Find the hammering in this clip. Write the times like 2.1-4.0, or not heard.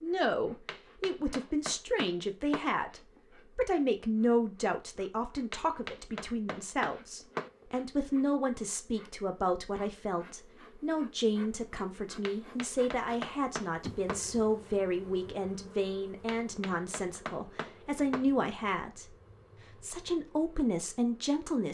0.7-2.6, 5.5-7.5, 12.2-14.2, 16.2-18.2.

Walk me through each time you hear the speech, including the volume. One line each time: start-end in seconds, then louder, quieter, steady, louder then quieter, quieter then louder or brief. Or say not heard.
0.0-19.1 steady
19.8-21.6 brief.